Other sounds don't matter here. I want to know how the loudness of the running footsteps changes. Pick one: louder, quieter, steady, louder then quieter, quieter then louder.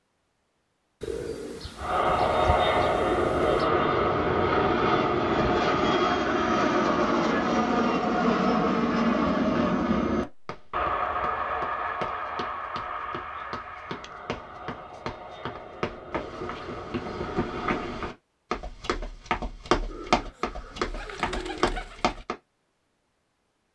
louder.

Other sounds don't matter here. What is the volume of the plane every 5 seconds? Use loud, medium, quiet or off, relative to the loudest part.
loud, loud, medium, quiet, off.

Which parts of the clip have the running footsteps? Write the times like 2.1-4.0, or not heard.
10.4-22.4.